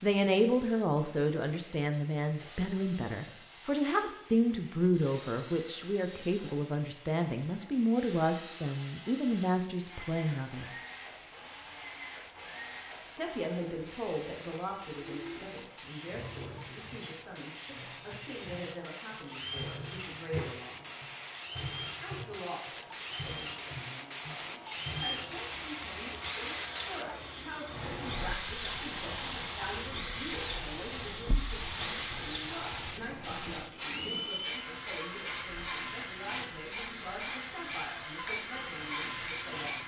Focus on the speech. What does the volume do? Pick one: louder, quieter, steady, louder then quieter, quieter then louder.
quieter.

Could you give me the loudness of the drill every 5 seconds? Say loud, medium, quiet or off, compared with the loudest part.
quiet, medium, medium, medium, loud, loud, loud, loud.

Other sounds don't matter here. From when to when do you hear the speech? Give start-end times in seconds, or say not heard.
0.0-10.7, 13.2-20.9, 22.0-39.8.